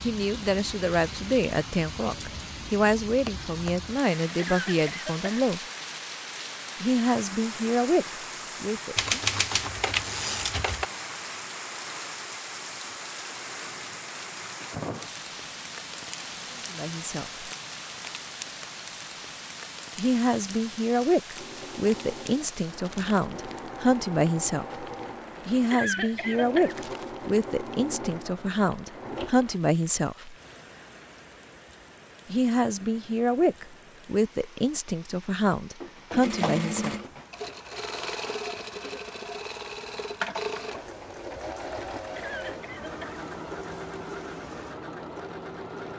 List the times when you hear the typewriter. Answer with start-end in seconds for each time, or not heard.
8.9-10.8.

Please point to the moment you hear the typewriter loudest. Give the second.
9 s.